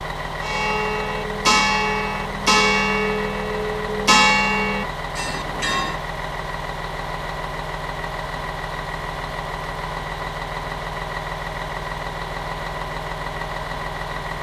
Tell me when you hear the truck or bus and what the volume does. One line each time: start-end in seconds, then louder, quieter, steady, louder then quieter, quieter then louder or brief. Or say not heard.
0.0-14.3 steady.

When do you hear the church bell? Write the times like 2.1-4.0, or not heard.
0.4-6.0.